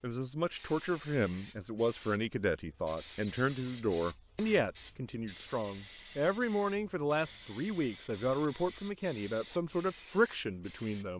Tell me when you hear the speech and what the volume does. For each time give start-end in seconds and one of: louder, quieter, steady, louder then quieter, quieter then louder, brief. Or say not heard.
0.0-11.1 steady.